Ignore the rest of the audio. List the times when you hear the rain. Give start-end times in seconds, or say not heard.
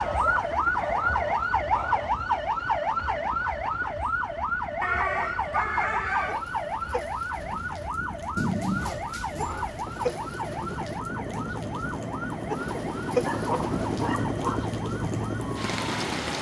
6.2-16.3.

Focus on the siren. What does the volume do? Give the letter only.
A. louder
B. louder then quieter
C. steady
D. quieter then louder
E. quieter
E.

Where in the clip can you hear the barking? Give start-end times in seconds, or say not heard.
0.0-2.1, 4.8-6.5, 8.3-10.2, 12.8-14.7.